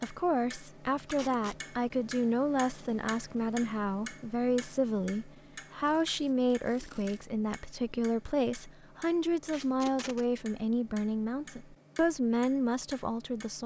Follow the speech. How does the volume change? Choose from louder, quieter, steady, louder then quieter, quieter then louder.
steady.